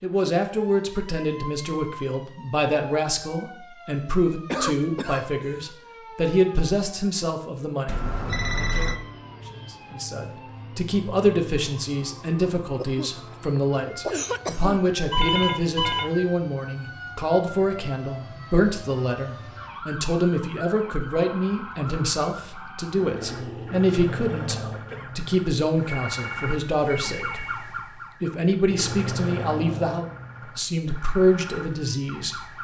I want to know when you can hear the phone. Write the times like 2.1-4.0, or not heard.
7.8-8.9, 15.1-16.1, 25.9-27.5.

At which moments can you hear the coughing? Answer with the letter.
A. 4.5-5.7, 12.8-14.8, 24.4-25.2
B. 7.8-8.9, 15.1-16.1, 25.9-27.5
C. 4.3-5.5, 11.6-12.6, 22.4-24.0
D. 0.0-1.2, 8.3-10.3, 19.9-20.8
A.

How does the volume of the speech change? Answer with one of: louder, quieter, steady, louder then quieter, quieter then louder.
steady.